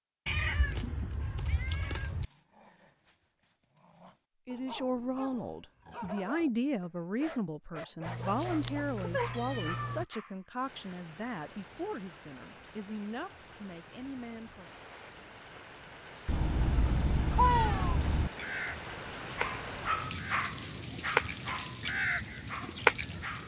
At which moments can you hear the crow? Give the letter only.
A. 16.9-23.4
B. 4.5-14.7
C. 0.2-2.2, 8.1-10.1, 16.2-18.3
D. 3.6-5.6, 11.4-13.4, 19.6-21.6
A.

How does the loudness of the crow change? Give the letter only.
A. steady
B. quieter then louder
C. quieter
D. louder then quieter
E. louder
B.